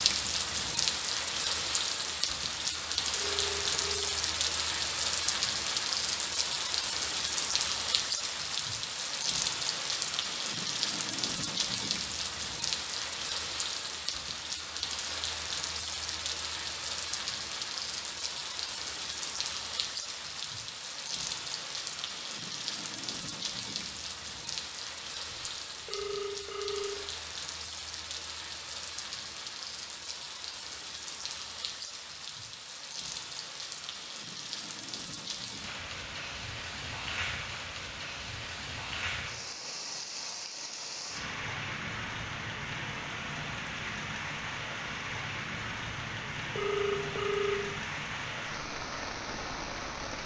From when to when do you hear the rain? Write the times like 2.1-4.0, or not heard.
0.0-50.2.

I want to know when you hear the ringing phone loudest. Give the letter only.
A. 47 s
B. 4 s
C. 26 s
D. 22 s
A.